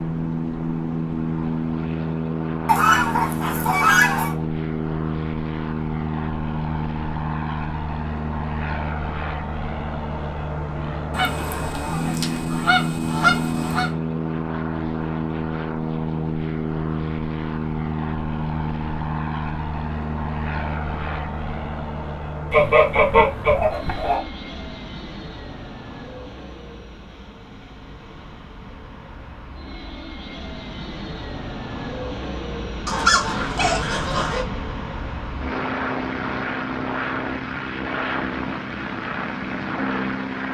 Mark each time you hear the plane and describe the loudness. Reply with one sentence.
You can hear the plane from 0.0 to 40.4 s, getting quieter then louder.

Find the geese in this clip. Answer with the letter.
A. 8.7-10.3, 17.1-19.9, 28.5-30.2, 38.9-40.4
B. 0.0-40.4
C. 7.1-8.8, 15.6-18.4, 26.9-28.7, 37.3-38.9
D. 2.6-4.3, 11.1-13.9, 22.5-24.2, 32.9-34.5
D.